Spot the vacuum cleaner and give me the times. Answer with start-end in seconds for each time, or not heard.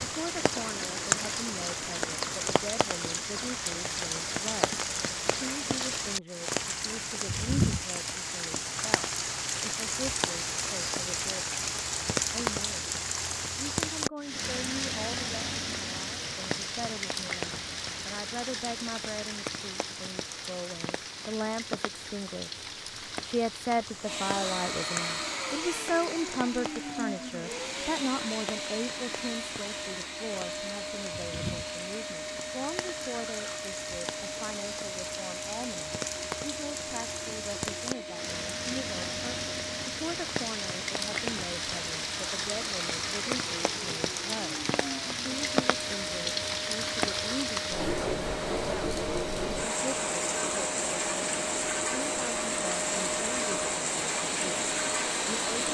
24.0-55.6.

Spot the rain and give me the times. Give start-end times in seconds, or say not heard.
0.0-55.6.